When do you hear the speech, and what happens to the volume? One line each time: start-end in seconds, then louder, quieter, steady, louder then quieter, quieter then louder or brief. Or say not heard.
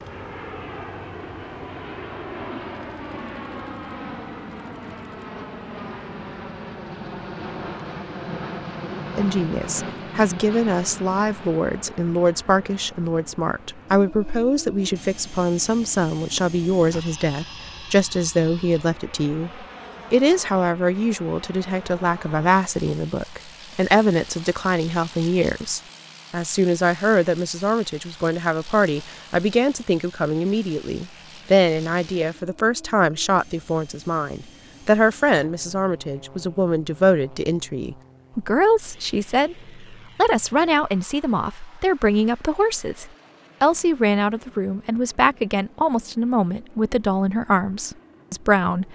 9.2-48.9 steady.